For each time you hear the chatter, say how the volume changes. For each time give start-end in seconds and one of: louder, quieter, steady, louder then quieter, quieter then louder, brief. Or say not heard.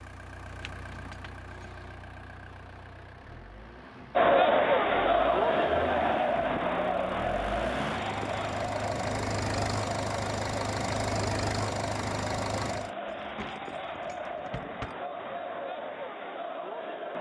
4.2-17.1 quieter.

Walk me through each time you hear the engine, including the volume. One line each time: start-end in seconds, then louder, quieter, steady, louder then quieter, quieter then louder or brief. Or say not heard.
0.0-12.9 louder.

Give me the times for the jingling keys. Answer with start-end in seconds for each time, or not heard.
0.6-1.9, 13.1-14.9.